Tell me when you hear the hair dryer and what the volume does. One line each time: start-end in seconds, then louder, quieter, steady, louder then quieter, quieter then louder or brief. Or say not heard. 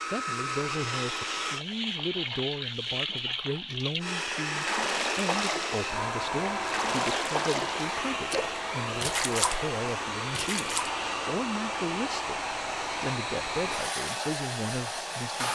0.0-1.6 brief
4.0-15.4 steady.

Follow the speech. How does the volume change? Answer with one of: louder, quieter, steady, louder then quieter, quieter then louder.
steady.